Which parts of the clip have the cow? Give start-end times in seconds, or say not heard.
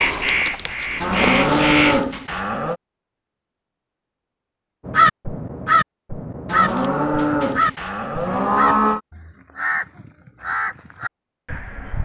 1.0-2.8, 6.5-9.0.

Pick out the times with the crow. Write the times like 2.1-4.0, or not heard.
0.0-2.0, 4.8-12.0.